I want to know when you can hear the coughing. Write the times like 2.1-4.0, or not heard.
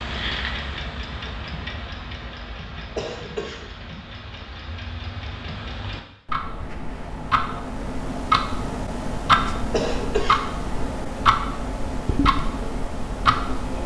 3.0-3.6, 9.7-10.4.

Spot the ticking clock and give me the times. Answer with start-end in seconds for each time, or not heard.
0.0-13.8.